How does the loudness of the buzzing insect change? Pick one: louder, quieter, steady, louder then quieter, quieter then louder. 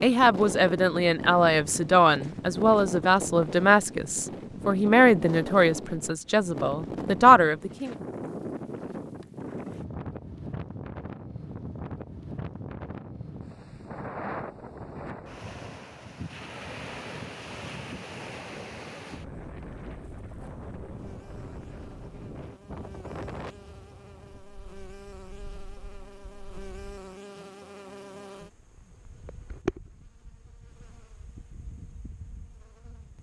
louder then quieter.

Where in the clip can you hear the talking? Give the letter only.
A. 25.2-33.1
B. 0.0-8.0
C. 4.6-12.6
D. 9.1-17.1
B.